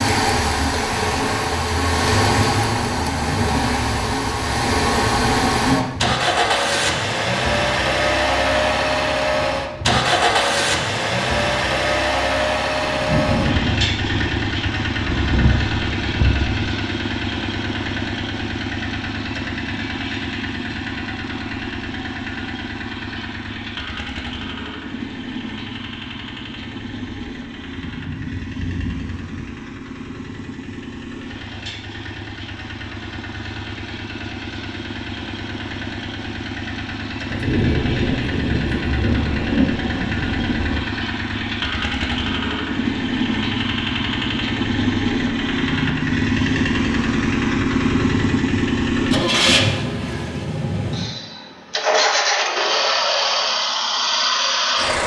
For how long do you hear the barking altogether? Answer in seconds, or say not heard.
not heard.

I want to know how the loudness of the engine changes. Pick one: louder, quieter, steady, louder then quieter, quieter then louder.
quieter then louder.